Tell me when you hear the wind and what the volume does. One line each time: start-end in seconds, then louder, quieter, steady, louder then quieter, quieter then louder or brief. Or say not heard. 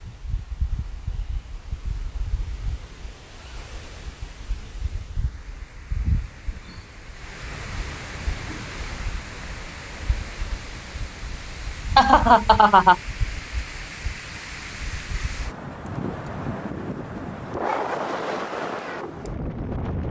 0.0-20.0 louder.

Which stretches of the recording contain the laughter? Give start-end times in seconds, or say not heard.
11.9-12.9.